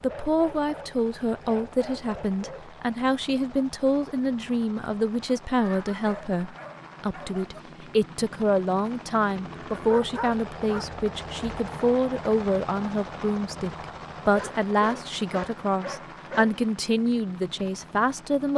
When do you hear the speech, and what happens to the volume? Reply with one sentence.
The speech can be heard from 0.0 to 18.5 s, at a steady volume.